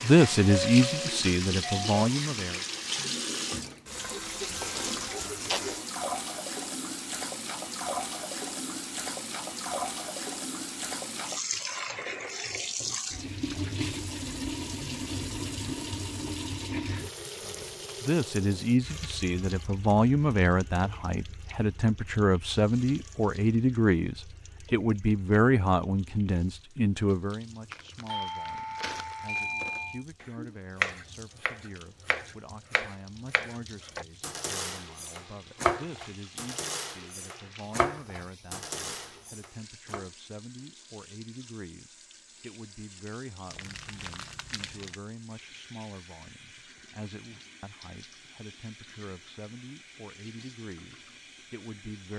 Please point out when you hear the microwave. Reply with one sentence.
You can't hear the microwave here.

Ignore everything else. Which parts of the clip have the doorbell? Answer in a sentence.
The doorbell can be heard from 0.3 to 2.1 s and from 28.1 to 30.1 s.